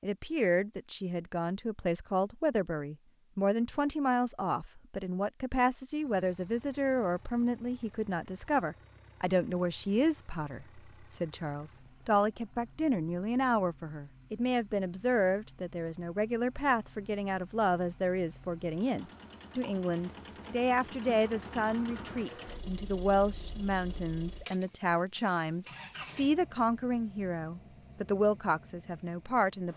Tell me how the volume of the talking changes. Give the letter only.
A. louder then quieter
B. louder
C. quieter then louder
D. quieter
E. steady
E.